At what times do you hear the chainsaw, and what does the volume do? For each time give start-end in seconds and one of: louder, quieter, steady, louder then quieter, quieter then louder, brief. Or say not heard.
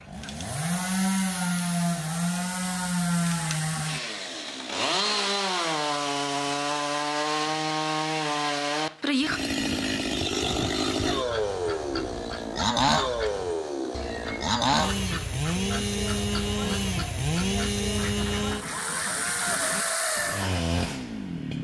0.0-21.5 steady.